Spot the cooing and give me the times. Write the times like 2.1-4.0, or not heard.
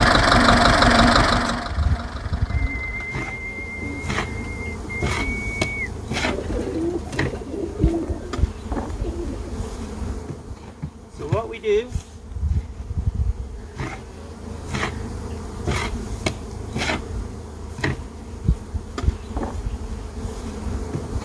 2.5-9.6.